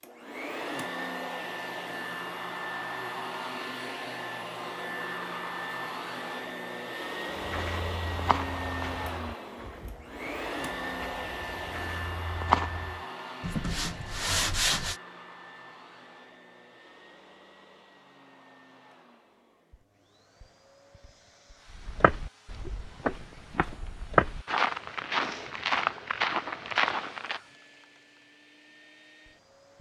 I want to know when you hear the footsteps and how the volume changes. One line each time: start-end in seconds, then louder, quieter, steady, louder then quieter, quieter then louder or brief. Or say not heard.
7.3-13.0 quieter then louder
21.7-27.4 quieter then louder.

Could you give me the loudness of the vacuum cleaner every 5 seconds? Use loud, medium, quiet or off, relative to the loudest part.
loud, loud, loud, quiet, quiet, quiet.